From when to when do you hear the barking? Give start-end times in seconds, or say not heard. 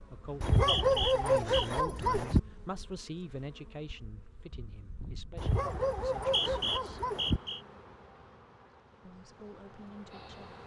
0.4-2.4, 5.3-7.4.